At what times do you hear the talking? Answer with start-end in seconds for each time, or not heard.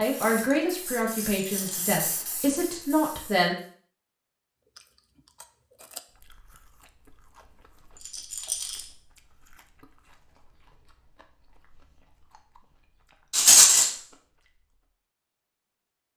0.0-3.5.